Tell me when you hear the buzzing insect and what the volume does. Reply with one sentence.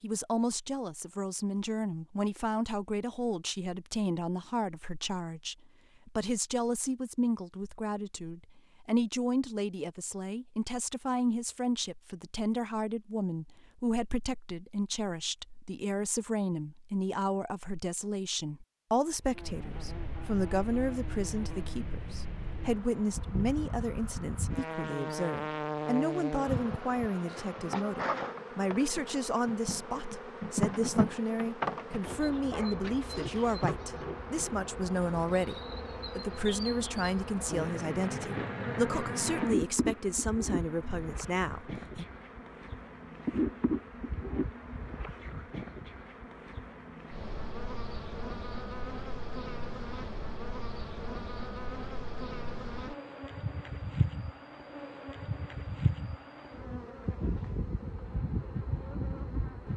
You can hear the buzzing insect from 19.2 to 59.7 s, at a steady volume.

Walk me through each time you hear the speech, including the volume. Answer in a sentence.
The speech can be heard from 0.0 to 42.0 s, at a steady volume.